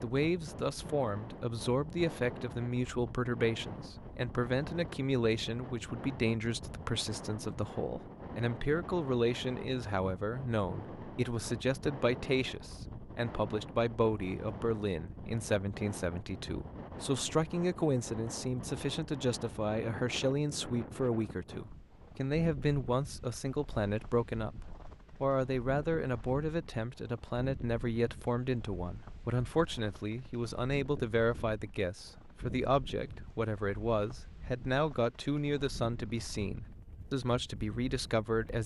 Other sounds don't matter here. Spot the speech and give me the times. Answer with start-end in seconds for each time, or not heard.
0.0-38.6.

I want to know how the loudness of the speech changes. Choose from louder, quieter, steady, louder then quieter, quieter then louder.
steady.